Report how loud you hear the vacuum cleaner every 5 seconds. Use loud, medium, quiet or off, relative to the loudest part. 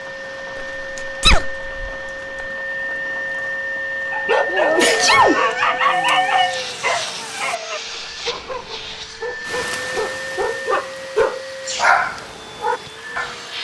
loud, loud, medium.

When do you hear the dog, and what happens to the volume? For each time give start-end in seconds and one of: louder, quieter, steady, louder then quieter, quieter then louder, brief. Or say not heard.
4.1-13.3 quieter then louder.